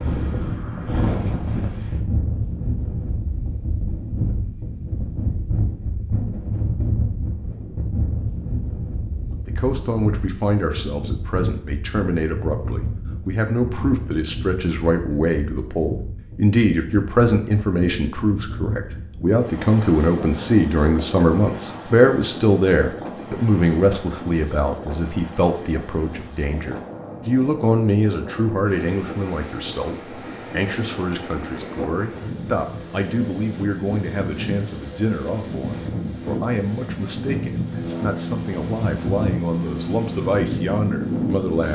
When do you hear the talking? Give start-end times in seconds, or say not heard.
9.4-41.7.